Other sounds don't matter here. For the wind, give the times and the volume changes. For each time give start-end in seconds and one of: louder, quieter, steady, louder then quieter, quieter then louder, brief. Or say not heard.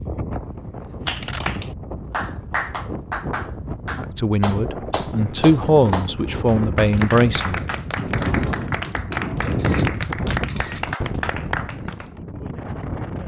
0.0-13.2 louder then quieter.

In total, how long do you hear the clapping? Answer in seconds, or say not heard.
11 s.